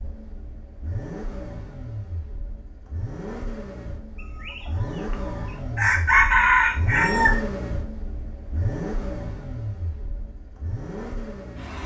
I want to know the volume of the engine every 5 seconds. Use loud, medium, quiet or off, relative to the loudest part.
medium, loud, medium.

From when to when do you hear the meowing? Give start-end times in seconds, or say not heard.
not heard.